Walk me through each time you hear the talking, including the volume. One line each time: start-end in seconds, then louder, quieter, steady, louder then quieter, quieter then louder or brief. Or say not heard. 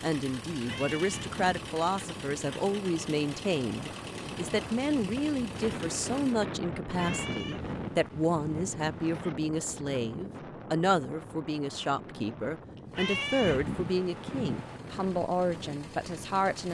0.0-16.7 steady.